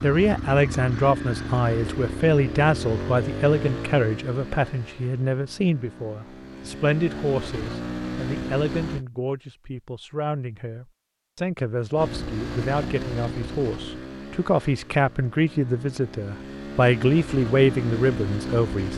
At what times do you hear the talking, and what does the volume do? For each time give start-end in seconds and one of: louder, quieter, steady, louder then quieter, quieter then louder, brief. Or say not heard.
0.0-18.9 quieter then louder.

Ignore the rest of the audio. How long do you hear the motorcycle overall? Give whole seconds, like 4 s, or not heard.
16 s.